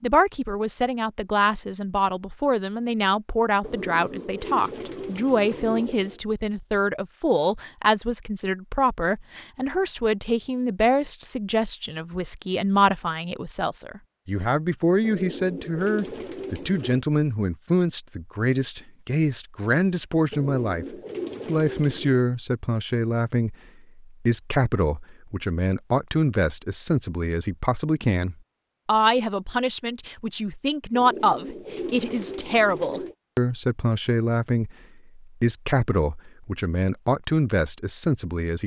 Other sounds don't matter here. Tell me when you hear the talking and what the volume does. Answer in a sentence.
You can hear the talking from 0.0 to 38.6 s, at a steady volume.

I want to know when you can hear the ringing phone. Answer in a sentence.
The ringing phone can't be heard in this clip.